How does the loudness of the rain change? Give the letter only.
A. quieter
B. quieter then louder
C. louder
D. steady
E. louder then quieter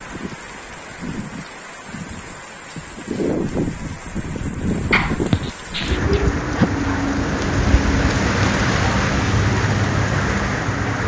C.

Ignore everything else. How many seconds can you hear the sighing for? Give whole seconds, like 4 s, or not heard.
2 s.